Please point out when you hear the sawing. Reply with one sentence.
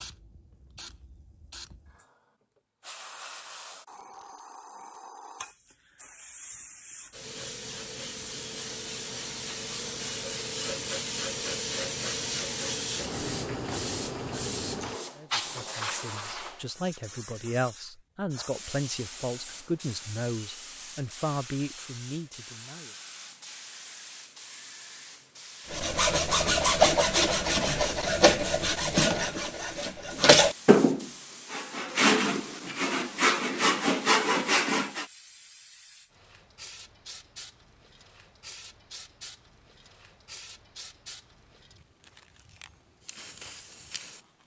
You can hear the sawing from 25.7 to 35.0 s.